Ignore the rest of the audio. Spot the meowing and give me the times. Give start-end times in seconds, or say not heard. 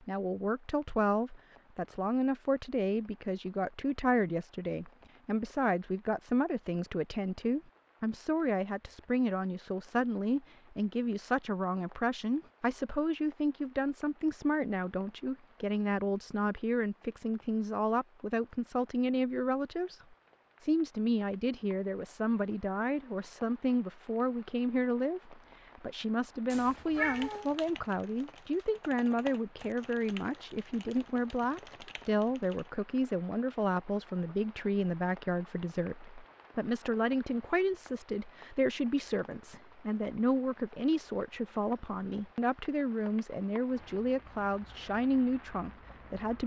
26.5-27.5.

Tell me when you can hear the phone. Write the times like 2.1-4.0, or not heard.
not heard.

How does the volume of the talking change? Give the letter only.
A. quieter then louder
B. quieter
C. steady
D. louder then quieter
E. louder
C.